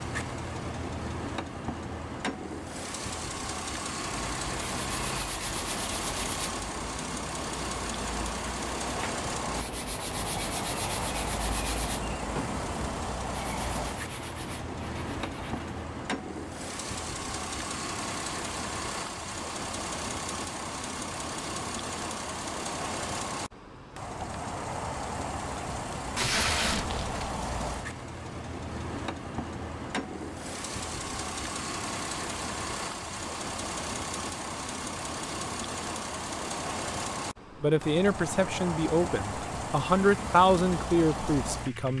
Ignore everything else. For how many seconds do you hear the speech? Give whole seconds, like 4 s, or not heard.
4 s.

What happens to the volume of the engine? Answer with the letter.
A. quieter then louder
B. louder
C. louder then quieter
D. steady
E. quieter
D.